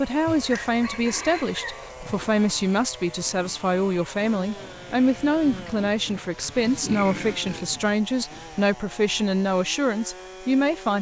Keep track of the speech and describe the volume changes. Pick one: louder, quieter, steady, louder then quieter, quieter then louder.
steady.